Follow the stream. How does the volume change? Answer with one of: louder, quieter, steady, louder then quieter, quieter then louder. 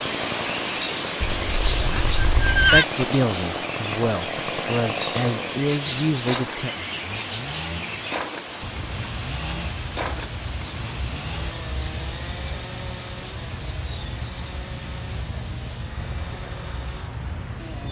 quieter.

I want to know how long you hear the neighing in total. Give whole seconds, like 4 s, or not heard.
2 s.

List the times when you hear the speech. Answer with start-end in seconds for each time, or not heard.
2.7-6.7.